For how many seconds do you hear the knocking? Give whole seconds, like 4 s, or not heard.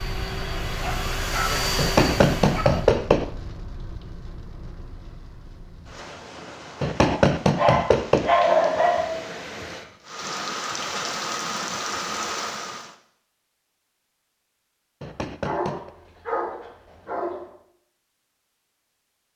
4 s.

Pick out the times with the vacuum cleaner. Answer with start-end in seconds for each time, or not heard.
0.0-3.0.